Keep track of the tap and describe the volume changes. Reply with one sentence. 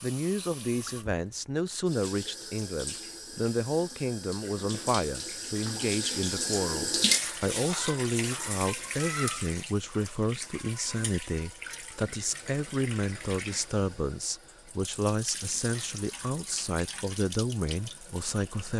The volume of the tap goes up, then down.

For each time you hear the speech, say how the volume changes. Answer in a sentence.
The speech can be heard from 0.0 to 18.7 s, at a steady volume.